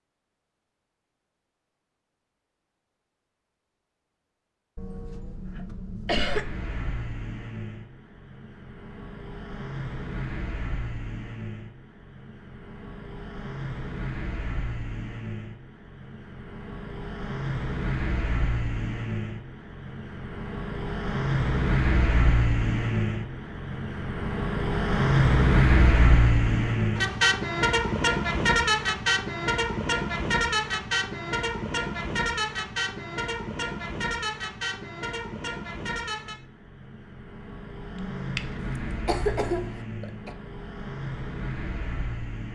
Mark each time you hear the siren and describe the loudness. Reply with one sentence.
The siren can't be heard in this clip.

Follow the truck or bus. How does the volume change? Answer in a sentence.
The volume of the truck or bus goes up, then down.